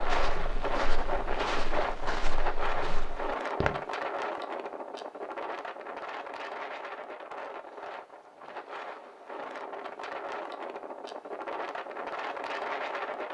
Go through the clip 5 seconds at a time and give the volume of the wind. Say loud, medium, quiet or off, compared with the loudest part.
loud, medium, loud.